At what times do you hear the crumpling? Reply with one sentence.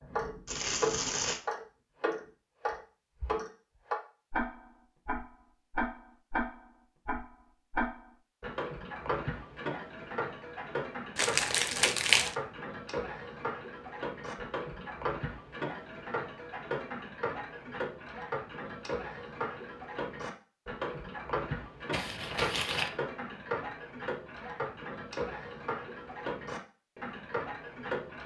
You can hear the crumpling from 0.5 to 1.4 s, from 11.2 to 12.3 s and from 21.9 to 22.9 s.